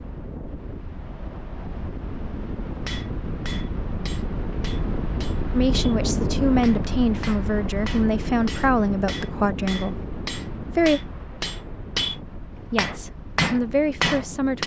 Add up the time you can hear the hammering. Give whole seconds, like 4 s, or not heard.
12 s.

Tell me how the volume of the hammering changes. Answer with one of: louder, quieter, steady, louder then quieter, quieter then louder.
louder.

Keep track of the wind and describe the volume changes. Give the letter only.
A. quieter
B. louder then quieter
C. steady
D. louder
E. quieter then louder
B.